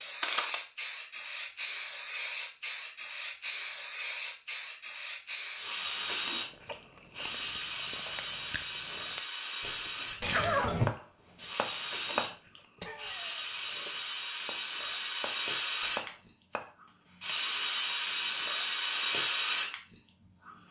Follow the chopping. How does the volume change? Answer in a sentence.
The loudness of the chopping goes down, then up.